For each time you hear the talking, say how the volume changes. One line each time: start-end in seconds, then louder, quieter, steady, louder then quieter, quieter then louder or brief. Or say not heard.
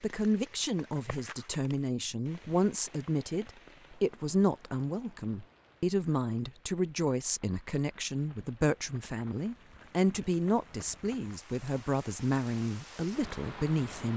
0.0-14.1 steady.